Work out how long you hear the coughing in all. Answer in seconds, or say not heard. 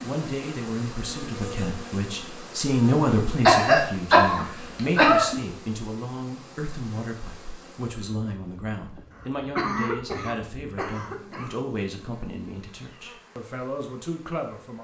4 s.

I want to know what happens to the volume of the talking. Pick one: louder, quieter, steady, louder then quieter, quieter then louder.
quieter.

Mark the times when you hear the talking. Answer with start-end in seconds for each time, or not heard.
0.0-14.7.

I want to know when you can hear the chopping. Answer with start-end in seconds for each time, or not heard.
not heard.